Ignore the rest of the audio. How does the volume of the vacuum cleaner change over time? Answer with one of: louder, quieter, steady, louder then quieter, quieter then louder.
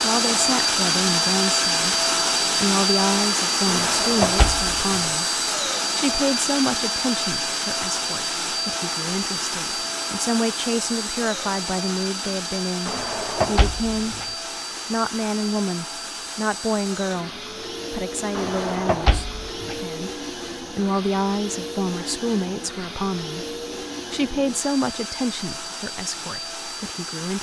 quieter.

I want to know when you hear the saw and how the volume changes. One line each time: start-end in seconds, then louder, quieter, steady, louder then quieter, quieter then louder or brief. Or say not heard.
not heard.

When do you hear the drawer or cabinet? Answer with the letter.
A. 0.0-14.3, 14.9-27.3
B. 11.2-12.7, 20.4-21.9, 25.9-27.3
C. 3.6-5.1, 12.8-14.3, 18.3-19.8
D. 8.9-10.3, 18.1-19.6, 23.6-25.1
C.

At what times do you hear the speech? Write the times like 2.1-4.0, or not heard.
0.0-14.3, 14.9-27.3.